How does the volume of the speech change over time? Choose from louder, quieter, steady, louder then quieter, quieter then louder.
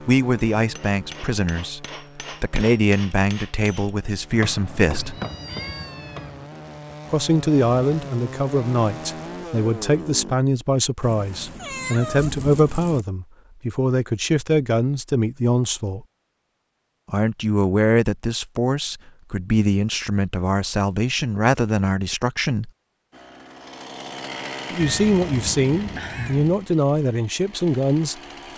steady.